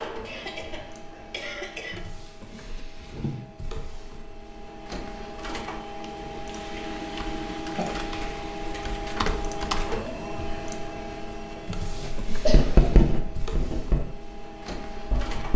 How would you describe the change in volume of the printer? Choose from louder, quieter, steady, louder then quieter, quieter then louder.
louder.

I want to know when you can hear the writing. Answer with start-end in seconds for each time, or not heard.
11.9-15.5.